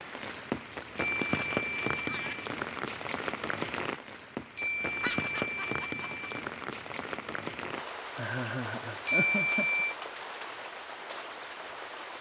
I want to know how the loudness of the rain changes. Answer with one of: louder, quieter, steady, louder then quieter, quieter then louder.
quieter.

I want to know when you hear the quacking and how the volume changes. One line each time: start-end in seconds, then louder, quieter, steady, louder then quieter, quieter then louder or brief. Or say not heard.
not heard.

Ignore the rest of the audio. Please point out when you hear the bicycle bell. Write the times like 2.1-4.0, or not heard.
0.9-2.2, 4.5-6.2, 9.1-9.9.